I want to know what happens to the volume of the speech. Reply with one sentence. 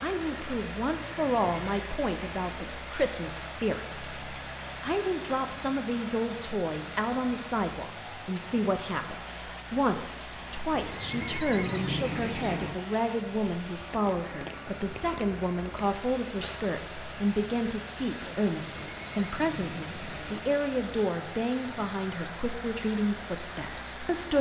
The loudness of the speech stays about the same.